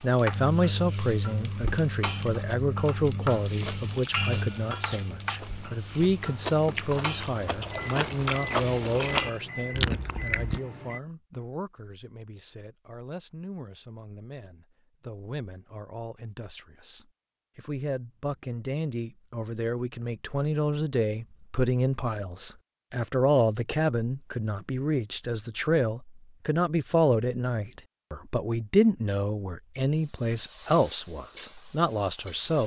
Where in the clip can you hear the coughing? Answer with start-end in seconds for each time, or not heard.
not heard.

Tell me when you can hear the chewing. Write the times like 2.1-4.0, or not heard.
3.2-10.6.